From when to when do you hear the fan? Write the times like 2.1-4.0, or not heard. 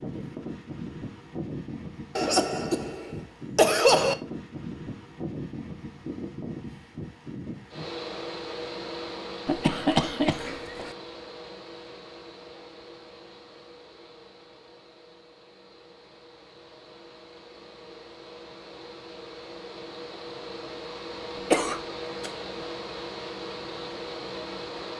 0.0-24.9.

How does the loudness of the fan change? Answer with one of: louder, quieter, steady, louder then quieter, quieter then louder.
quieter then louder.